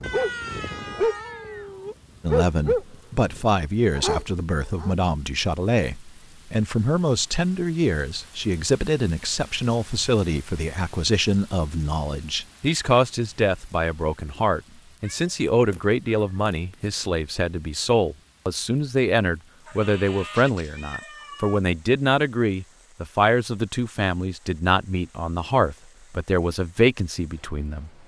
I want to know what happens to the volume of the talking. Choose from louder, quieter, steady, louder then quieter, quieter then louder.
steady.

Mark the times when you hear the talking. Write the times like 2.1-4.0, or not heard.
2.2-27.9.